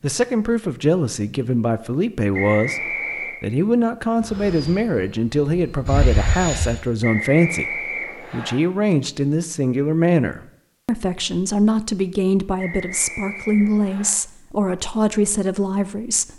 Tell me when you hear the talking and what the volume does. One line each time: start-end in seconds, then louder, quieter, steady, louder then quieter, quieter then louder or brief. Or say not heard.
0.0-16.3 steady.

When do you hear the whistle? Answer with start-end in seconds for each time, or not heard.
2.3-3.4, 7.0-8.6, 12.6-14.1.